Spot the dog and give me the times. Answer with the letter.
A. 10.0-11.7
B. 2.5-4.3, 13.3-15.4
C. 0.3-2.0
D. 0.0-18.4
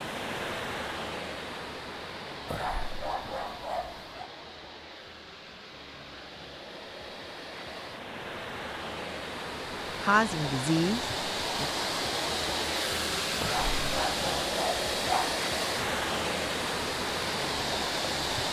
B.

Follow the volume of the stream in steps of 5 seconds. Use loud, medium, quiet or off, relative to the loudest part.
medium, medium, loud, loud.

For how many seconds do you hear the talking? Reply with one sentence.
The talking can be heard for 2 seconds in total.